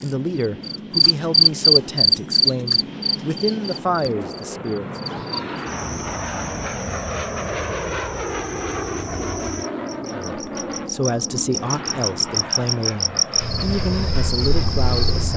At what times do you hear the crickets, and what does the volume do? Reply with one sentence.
You can hear the crickets from 0.0 to 15.3 s, getting quieter then louder.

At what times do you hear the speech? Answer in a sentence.
The speech can be heard from 0.0 to 4.8 s and from 10.1 to 15.3 s.